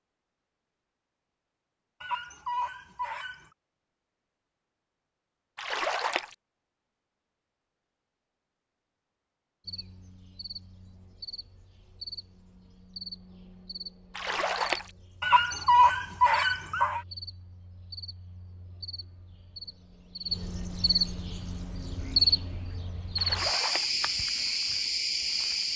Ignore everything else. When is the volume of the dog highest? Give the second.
16 s.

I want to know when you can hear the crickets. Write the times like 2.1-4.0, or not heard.
9.7-25.7.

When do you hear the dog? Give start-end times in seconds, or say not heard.
2.0-3.5, 15.2-17.0.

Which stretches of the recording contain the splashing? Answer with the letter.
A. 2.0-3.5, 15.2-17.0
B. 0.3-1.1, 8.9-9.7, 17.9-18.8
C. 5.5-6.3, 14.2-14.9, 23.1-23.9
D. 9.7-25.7
C.